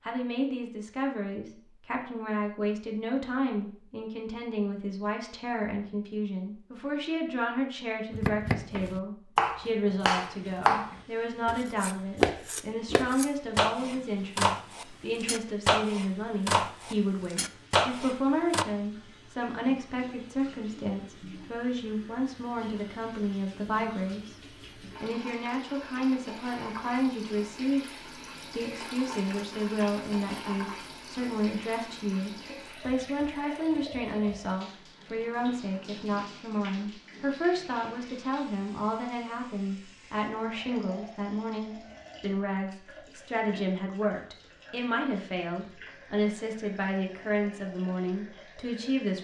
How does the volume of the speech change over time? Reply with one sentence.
The volume of the speech stays about the same.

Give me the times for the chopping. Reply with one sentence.
The chopping can be heard from 8.1 to 18.6 s.